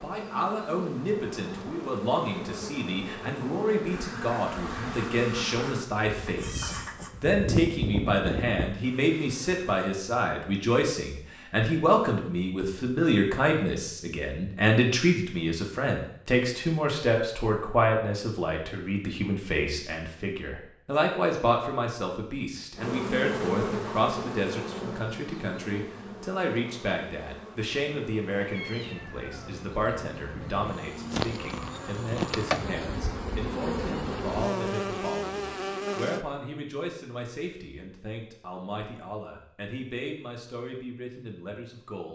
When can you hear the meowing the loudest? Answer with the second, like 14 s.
7 s.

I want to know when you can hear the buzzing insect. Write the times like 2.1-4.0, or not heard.
0.0-9.7, 22.8-36.2.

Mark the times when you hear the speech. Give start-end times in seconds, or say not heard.
0.0-42.1.